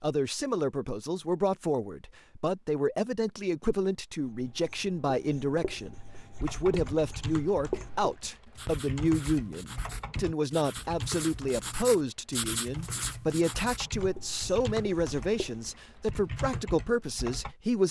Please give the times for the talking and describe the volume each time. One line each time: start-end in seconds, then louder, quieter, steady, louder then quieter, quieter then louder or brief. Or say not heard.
0.0-17.8 steady.